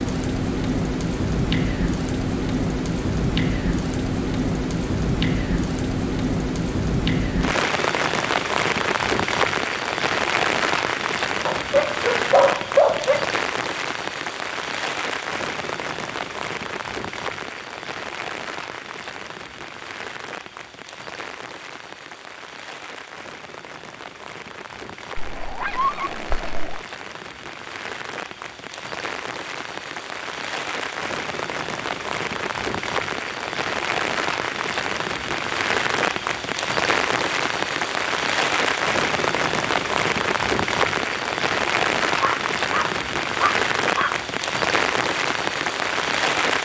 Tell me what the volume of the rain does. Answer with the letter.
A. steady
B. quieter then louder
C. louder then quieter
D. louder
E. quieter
B.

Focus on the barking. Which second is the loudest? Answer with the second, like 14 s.
13 s.